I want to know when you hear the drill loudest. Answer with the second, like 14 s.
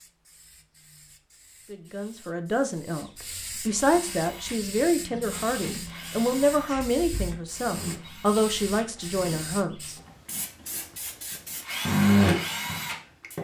12 s.